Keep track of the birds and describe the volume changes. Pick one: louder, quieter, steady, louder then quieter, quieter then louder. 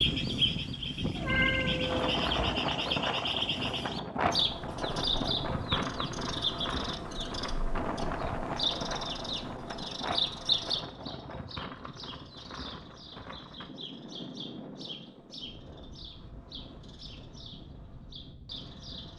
quieter.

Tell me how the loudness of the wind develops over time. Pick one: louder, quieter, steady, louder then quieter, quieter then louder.
quieter.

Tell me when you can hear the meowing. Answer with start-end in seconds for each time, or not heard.
1.1-2.5.